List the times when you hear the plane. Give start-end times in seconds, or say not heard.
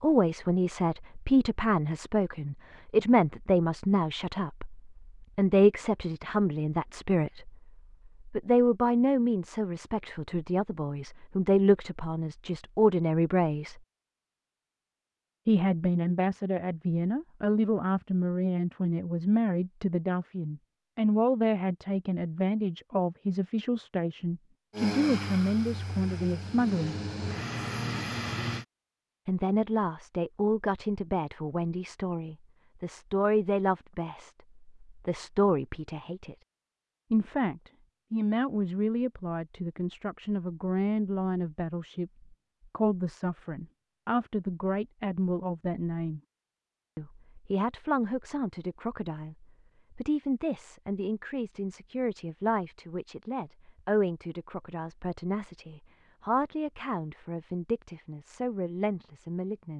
24.7-28.6.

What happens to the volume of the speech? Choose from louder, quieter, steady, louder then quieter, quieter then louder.
quieter.